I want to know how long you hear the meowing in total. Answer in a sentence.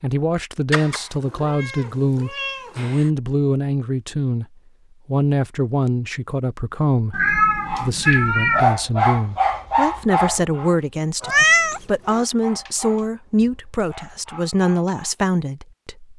You can hear the meowing for 5 seconds altogether.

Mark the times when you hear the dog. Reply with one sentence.
You can hear the dog from 7.7 to 15.1 s.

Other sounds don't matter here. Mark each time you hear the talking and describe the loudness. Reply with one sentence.
The talking can be heard from 0.0 to 4.5 s, at a steady volume; and from 5.0 to 16.1 s, at a steady volume.